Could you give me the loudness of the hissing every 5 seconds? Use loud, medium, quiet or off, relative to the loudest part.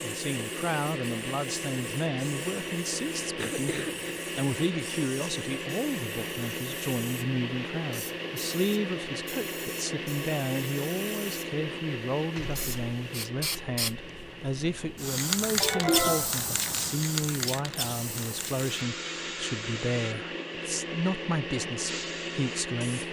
quiet, quiet, medium, loud, medium.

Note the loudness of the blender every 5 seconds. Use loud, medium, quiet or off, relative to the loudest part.
loud, loud, loud, medium, loud.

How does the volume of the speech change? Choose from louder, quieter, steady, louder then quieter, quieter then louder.
steady.